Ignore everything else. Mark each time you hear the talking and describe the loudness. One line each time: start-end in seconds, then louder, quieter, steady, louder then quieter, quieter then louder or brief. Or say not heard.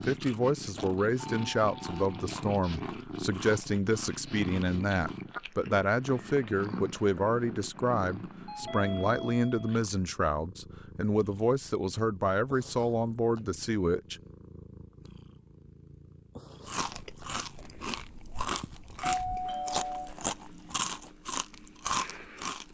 0.0-14.2 steady.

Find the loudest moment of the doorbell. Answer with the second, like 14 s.
19 s.